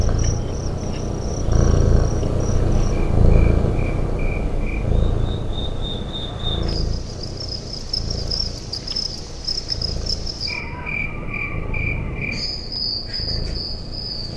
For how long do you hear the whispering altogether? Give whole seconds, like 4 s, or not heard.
not heard.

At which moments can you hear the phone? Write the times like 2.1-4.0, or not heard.
not heard.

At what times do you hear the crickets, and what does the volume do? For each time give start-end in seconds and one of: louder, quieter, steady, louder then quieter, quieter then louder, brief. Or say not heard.
0.0-14.3 louder.